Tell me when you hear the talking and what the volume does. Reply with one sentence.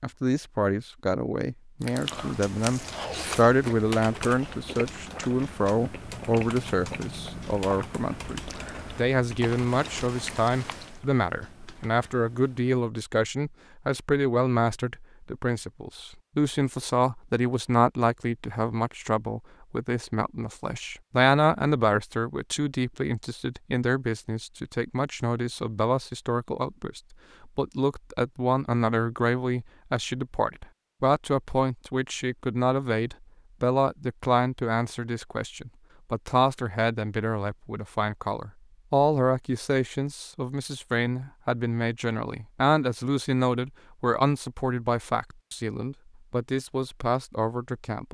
The talking can be heard from 0.0 to 48.0 s, at a steady volume.